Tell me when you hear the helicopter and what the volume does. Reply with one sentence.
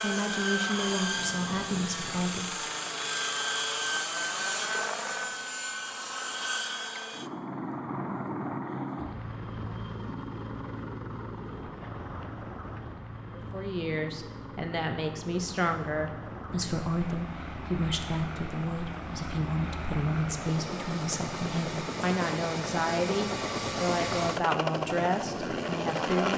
You can hear the helicopter from 0.0 to 26.3 s, getting quieter then louder.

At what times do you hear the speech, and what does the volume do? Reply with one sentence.
You can hear the speech briefly from 0.0 to 2.5 s; and from 13.3 to 26.3 s, at a steady volume.